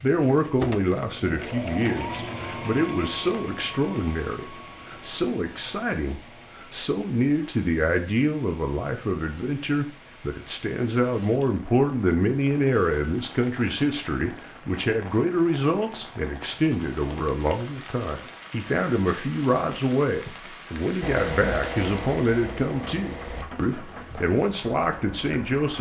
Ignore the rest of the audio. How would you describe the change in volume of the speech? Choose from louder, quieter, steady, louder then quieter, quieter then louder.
steady.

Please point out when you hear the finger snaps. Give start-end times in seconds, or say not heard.
not heard.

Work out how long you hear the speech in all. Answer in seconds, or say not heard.
26 s.